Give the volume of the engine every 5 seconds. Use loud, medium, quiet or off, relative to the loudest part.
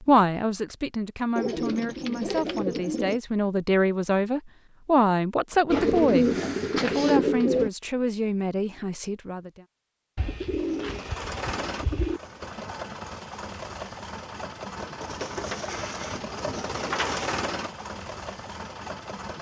off, off, loud, loud.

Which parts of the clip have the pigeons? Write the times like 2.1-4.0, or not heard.
1.4-3.2, 5.7-7.7, 10.2-12.2, 14.8-17.4.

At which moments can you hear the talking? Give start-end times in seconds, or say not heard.
0.1-9.7.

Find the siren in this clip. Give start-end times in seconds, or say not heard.
not heard.